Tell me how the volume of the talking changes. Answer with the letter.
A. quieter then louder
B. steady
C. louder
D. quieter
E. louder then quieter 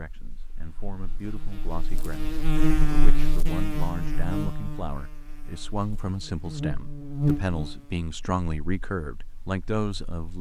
C.